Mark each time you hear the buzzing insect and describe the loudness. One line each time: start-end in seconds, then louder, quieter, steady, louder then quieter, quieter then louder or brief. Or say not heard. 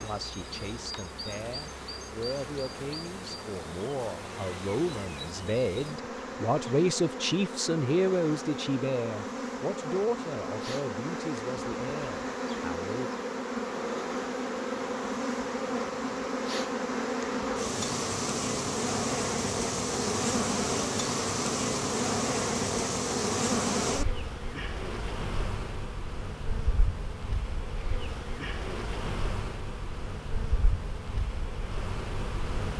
0.0-32.7 louder then quieter.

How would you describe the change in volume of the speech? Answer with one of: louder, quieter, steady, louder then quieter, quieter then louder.
louder then quieter.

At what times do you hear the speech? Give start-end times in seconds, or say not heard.
0.0-13.1.